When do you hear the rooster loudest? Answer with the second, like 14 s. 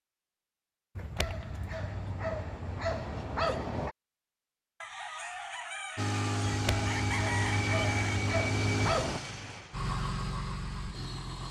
7 s.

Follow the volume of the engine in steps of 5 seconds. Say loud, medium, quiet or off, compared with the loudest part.
off, loud, medium.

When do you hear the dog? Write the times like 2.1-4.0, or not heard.
0.9-4.0, 6.5-9.2.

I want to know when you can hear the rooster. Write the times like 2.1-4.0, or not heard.
4.8-8.2.